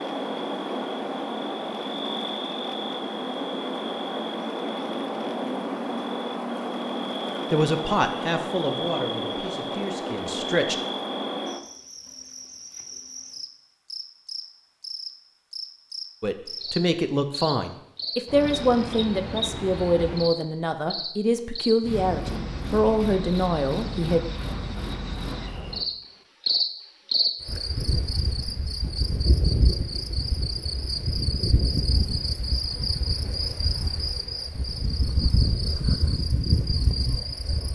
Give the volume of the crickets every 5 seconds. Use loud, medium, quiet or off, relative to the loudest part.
loud, loud, medium, medium, medium, loud, loud, loud.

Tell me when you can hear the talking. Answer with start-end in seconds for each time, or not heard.
7.5-10.8, 16.2-24.2.